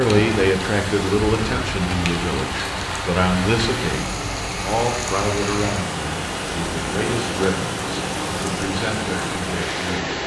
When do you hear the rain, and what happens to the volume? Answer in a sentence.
The rain can be heard from 0.0 to 10.2 s, at a steady volume.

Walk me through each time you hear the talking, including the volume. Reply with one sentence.
The talking can be heard from 0.0 to 10.2 s, getting quieter.